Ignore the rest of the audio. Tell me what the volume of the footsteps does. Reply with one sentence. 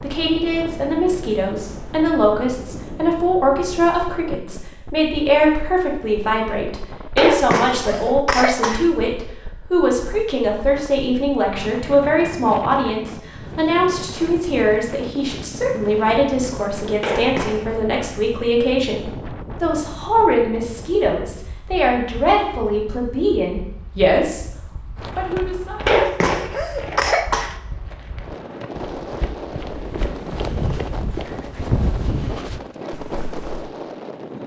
The volume of the footsteps goes down, then up.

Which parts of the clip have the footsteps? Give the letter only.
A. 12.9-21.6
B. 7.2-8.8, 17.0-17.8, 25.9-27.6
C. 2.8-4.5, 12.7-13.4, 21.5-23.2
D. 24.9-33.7
D.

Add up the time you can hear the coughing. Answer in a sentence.
You can hear the coughing for 4 seconds altogether.